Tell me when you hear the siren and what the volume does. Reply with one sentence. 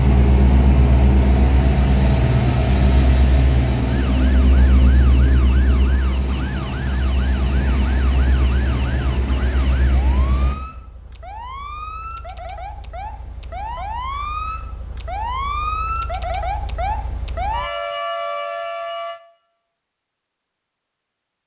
You can hear the siren from 3.9 to 19.2 s, getting louder.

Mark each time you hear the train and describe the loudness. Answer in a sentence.
You can hear the train from 0.0 to 10.6 s, getting quieter.